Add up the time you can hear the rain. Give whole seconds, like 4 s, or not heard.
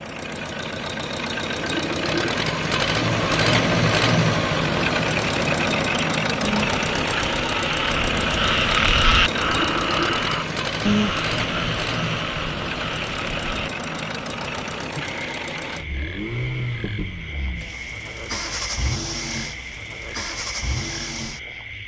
not heard.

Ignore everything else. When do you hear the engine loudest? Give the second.
4 s.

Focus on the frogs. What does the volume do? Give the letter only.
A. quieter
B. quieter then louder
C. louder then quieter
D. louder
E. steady
A.